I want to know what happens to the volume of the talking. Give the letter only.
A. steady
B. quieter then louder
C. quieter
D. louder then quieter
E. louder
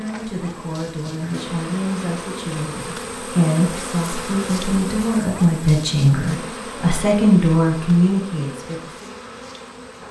E.